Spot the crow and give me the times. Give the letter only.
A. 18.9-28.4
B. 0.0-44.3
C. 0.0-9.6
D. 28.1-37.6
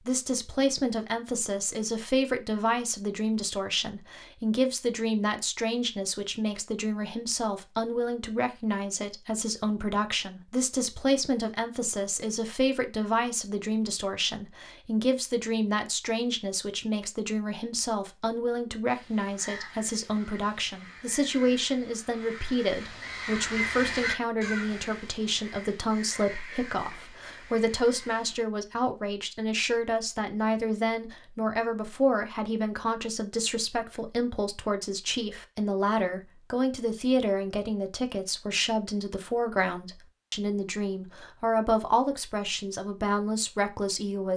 A.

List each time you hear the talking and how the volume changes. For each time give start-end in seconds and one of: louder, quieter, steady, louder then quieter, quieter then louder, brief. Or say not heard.
0.0-44.3 steady.